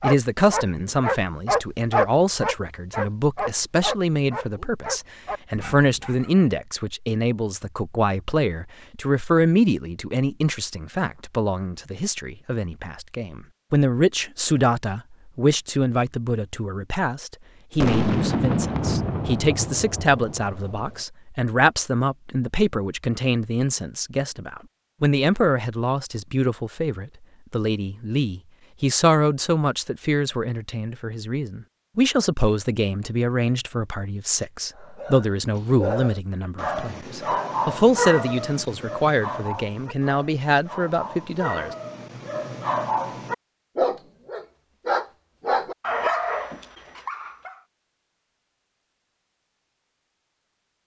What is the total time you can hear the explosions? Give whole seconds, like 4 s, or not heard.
3 s.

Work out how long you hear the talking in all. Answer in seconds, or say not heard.
42 s.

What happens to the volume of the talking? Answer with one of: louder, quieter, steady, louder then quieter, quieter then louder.
steady.